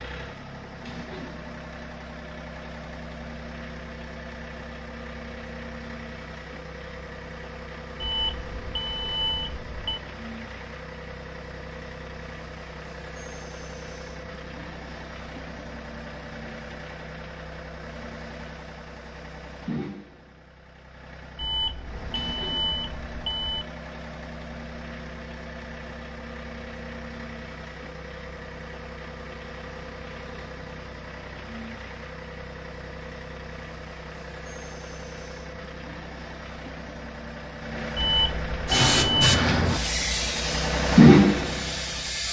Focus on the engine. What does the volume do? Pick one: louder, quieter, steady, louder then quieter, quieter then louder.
louder.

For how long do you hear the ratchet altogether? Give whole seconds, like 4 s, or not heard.
not heard.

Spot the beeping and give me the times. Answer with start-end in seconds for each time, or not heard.
8.0-10.0, 21.4-23.6, 38.0-39.5.